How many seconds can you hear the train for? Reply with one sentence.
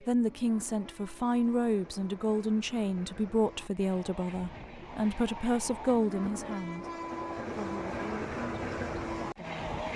The train can be heard for 10 seconds in total.